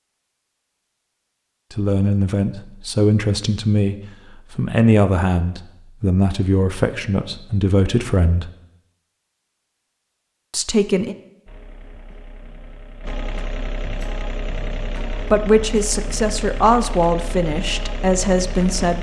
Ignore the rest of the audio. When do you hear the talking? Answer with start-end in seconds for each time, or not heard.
1.7-8.5, 10.5-11.2, 15.1-18.9.